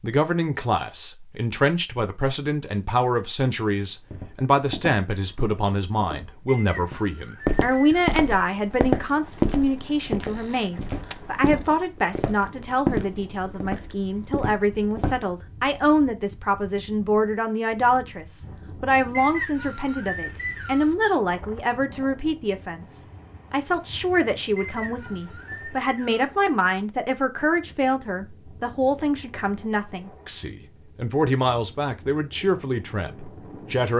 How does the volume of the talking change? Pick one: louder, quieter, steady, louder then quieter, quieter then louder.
steady.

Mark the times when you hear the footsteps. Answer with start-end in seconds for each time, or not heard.
3.8-15.2.